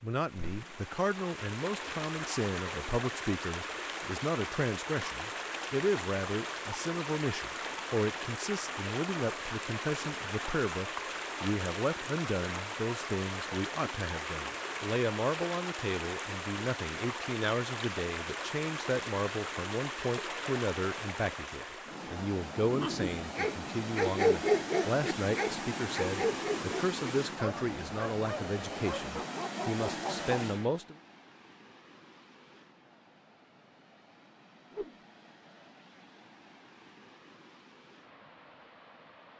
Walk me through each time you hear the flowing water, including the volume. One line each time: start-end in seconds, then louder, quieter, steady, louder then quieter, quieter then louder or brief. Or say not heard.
0.0-39.3 quieter.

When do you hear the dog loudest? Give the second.
24 s.